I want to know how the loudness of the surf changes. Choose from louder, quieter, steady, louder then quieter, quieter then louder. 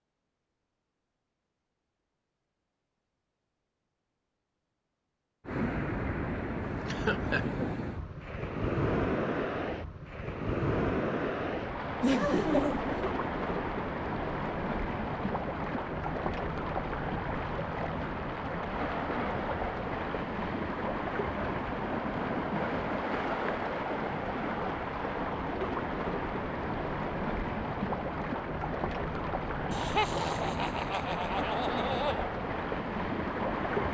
steady.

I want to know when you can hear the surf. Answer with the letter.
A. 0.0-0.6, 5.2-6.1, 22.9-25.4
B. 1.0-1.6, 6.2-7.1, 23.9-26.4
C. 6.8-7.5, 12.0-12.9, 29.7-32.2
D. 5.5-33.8
D.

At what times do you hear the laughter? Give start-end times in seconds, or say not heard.
6.8-7.5, 12.0-12.9, 29.7-32.2.